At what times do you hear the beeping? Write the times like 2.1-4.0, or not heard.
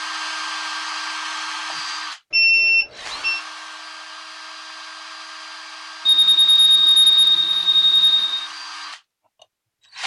2.3-3.4, 6.0-8.5.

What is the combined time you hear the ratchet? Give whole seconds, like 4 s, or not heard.
not heard.